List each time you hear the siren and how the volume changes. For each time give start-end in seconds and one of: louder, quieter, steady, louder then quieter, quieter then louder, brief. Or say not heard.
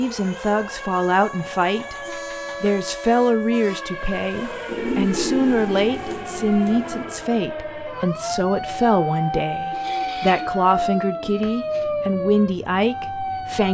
0.0-13.6 louder.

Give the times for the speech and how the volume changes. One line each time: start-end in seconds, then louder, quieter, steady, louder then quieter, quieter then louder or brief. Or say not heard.
0.0-13.6 steady.